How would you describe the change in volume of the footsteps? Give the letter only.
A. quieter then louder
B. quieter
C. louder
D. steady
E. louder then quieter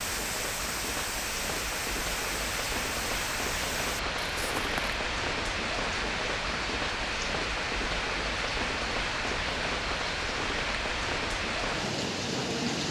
D.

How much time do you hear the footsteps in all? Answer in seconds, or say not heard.
5 s.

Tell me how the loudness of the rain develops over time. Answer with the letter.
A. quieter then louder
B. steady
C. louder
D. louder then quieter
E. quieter
B.